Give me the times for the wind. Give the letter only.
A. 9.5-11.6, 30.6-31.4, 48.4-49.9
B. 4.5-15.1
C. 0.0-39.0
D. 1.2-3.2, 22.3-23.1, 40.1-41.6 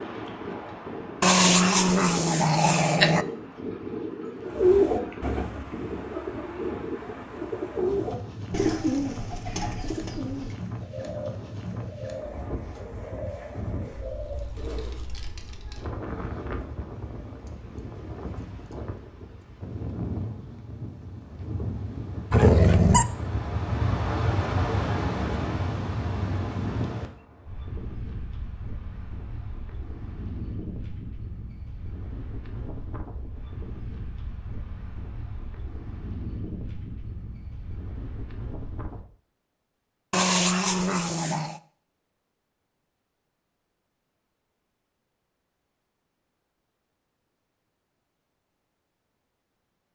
C.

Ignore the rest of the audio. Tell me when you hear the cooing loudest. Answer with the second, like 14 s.
5 s.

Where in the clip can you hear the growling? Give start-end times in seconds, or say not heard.
1.2-3.2, 22.3-23.1, 40.1-41.6.